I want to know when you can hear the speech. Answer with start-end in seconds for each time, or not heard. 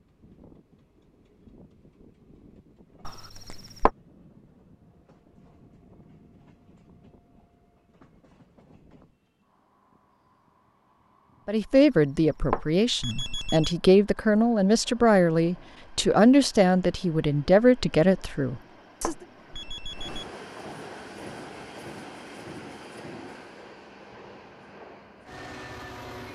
11.4-19.1.